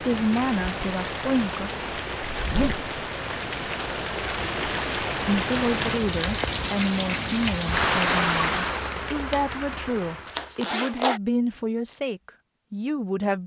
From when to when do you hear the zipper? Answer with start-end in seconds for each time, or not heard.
2.3-2.9, 10.2-11.2.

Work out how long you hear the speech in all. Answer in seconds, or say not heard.
10 s.